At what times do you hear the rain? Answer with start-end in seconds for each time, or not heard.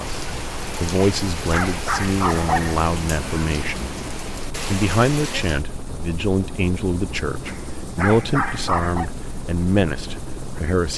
0.0-5.7.